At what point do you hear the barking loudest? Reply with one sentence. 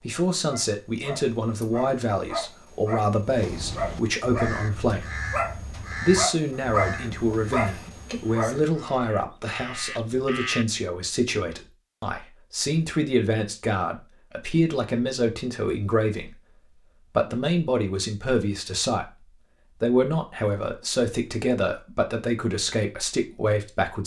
The loudest moment of the barking is at 7 seconds.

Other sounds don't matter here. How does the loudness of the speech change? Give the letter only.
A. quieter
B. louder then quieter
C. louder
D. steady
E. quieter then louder
D.